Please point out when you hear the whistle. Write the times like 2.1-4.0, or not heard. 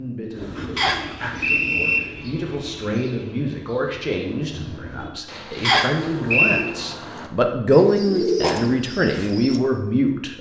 0.8-2.0, 5.6-6.7.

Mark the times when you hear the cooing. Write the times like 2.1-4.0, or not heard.
0.3-9.6.